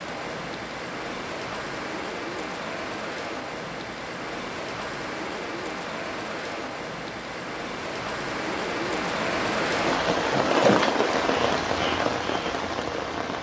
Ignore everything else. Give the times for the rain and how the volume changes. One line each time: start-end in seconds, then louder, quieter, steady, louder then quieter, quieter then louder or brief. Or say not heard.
0.0-13.3 louder.